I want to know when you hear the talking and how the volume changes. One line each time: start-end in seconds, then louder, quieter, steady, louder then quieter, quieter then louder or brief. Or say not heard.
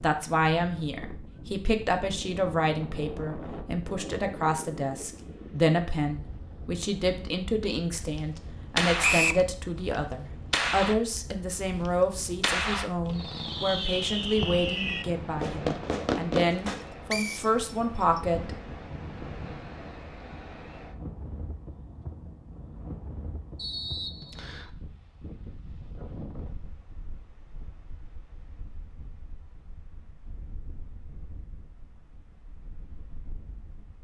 0.0-18.6 steady.